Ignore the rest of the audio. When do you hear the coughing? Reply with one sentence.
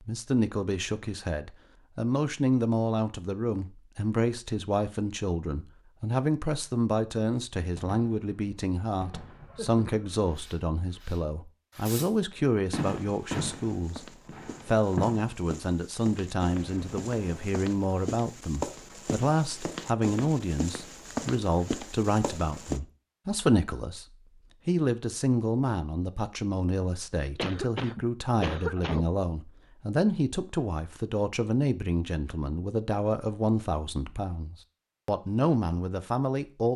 You can hear the coughing from 9.3 to 10.2 s, from 16.4 to 17.6 s and from 27.3 to 29.1 s.